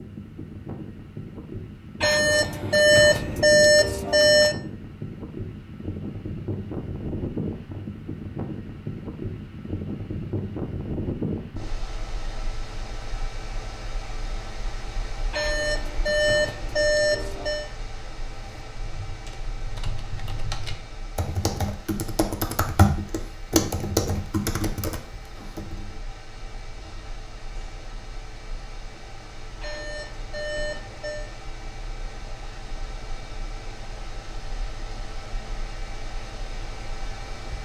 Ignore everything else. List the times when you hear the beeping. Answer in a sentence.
The beeping can be heard from 2.0 to 4.5 s, from 15.3 to 17.7 s and from 29.6 to 31.3 s.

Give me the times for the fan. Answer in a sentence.
You can hear the fan from 0.0 to 37.5 s.